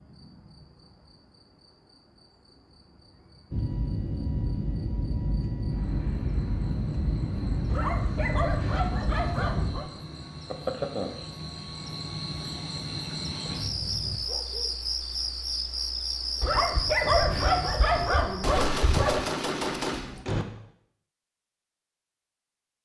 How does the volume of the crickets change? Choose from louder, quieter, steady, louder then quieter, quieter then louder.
louder.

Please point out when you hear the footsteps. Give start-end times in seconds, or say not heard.
not heard.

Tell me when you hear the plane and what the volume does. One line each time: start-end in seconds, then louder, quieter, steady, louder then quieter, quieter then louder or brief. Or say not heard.
3.5-9.8 steady.